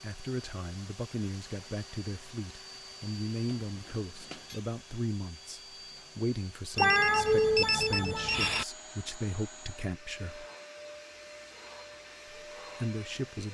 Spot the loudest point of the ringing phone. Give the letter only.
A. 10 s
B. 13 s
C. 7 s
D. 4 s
C.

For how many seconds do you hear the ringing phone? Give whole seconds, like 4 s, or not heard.
3 s.